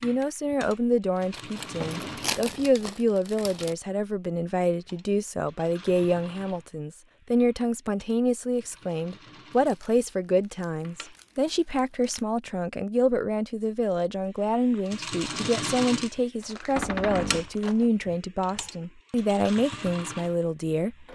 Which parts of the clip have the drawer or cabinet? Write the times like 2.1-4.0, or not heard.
1.6-2.5, 16.8-17.5.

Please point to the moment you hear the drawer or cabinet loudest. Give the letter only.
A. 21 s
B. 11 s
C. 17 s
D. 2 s
C.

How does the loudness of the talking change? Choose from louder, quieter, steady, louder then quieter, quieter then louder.
steady.